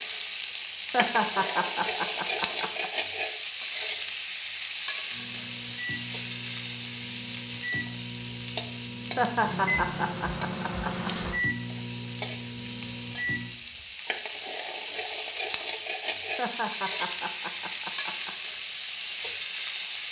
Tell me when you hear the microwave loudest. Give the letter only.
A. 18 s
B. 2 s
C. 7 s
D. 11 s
D.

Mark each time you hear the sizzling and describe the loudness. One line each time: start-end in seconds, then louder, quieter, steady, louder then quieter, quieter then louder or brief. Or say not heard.
0.0-20.0 quieter then louder.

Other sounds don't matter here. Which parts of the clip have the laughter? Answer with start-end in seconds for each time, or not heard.
0.9-2.9, 9.2-11.3, 16.4-18.3.